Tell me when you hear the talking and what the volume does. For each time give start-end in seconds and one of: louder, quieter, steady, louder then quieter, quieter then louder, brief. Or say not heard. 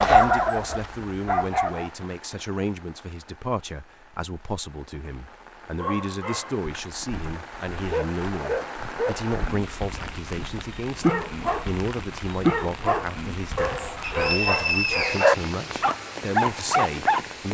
0.1-17.4 steady.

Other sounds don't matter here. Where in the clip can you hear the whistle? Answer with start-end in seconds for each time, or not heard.
14.0-15.3.